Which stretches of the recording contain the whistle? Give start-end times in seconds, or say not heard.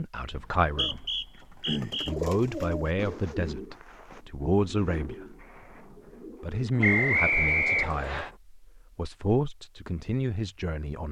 0.3-2.1, 6.8-8.3.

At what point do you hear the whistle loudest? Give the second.
7 s.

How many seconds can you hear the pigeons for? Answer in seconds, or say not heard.
8 s.